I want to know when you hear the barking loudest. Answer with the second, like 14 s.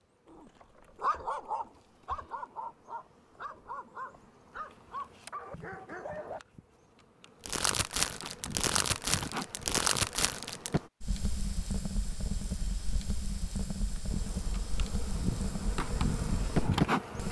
1 s.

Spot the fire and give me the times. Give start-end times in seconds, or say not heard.
7.5-17.2.